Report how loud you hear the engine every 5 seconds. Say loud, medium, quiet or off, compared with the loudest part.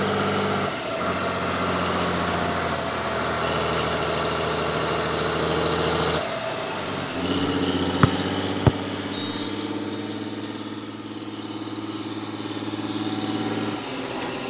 loud, loud, medium.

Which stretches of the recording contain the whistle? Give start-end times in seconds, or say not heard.
8.0-9.5.